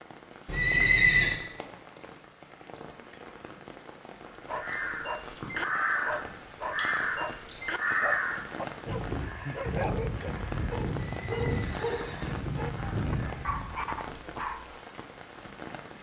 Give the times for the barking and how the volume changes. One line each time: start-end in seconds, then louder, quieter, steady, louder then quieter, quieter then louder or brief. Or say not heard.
4.5-14.8 steady.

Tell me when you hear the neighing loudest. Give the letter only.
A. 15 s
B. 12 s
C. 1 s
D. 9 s
C.